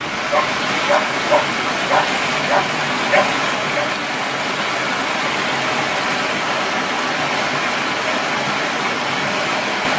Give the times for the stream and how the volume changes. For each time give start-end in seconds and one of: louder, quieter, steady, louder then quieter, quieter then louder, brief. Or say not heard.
0.0-9.9 steady.